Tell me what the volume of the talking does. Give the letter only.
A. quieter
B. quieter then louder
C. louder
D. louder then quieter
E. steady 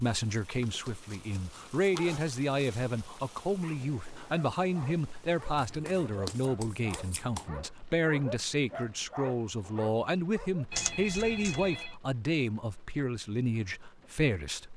E.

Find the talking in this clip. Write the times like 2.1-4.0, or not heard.
0.0-14.7.